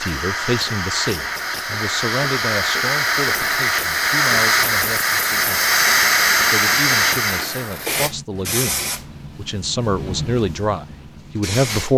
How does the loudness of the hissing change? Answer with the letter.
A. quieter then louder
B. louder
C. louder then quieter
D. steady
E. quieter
C.